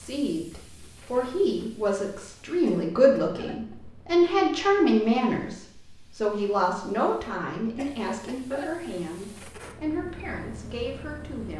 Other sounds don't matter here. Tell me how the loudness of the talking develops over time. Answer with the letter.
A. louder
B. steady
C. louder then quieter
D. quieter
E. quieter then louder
C.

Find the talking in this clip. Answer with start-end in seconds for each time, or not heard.
0.0-11.5.